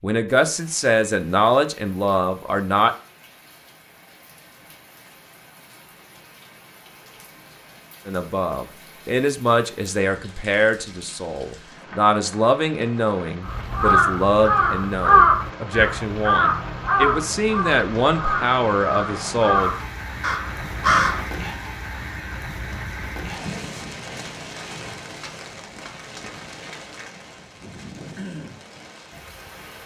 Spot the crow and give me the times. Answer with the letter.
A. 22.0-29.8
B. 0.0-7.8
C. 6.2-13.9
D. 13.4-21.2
D.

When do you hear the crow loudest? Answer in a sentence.
The volume of the crow peaks at 15 seconds.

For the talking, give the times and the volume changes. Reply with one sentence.
The talking can be heard briefly from 0.0 to 2.9 s; and from 8.1 to 19.7 s, at a steady volume.